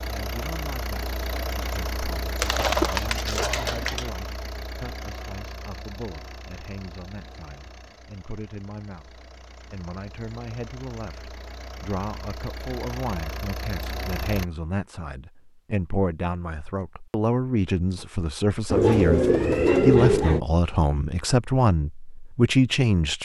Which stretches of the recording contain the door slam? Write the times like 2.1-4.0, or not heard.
not heard.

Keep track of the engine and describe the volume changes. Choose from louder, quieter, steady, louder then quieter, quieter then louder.
quieter then louder.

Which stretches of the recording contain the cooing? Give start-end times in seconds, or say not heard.
2.4-4.1, 18.7-20.4.